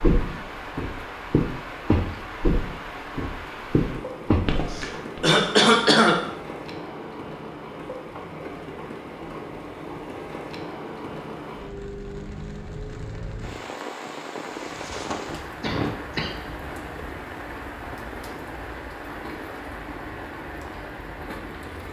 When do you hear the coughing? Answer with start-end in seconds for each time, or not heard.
4.7-6.2, 14.5-16.4.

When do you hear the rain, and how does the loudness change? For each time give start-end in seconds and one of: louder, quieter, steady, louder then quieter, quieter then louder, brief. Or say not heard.
0.0-21.8 steady.